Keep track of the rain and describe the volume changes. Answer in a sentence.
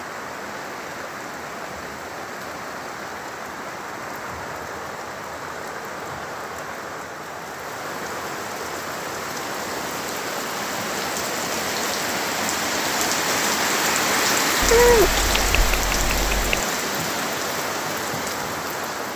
The volume of the rain goes up.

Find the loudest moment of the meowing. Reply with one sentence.
The volume of the meowing peaks at 15 seconds.